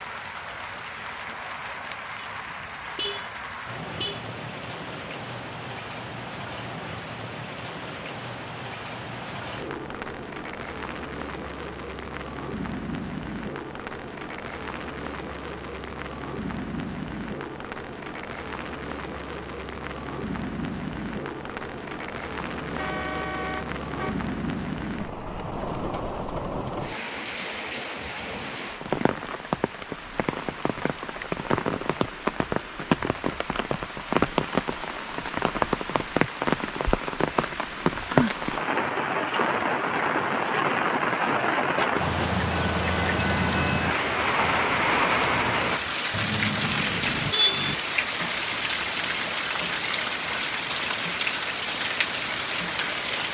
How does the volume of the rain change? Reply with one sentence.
The loudness of the rain goes up.